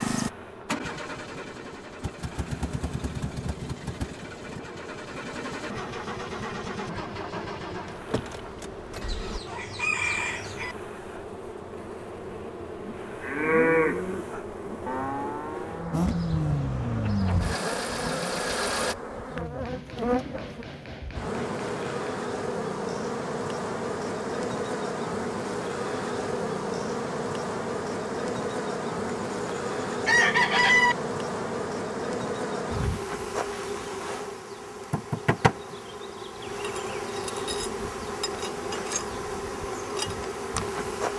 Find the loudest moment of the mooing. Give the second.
14 s.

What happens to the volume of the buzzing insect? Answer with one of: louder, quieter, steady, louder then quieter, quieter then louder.
louder.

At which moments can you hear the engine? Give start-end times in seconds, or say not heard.
0.0-9.4, 15.9-18.9.